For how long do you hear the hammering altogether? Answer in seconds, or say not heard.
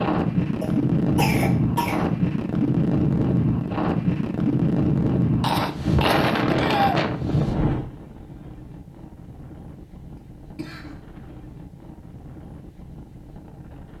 not heard.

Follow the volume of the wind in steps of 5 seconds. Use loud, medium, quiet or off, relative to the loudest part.
loud, loud, quiet.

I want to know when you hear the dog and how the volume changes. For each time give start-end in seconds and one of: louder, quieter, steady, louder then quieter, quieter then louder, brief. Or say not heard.
not heard.